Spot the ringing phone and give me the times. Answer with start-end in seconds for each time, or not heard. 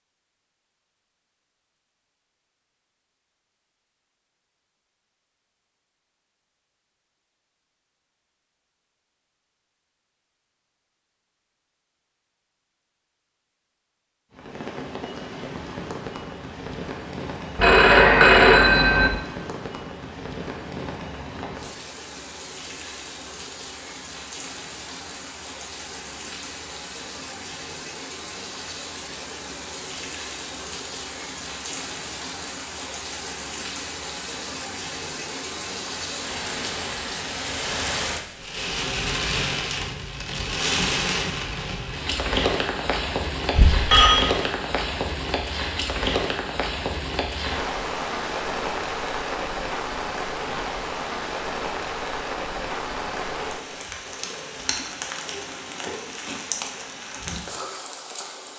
17.6-19.1, 43.5-44.2.